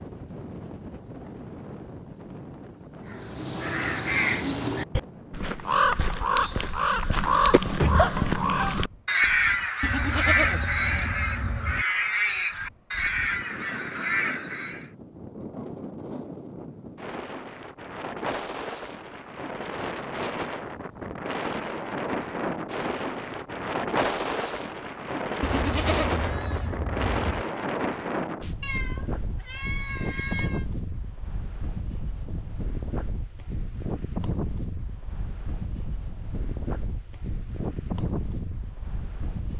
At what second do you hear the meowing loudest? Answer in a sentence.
The loudest moment of the meowing is at 8 seconds.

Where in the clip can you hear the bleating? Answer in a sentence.
You can hear the bleating from 9.8 to 11.8 s and from 25.4 to 27.4 s.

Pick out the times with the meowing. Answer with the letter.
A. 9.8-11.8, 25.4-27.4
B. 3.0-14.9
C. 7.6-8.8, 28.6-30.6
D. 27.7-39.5
C.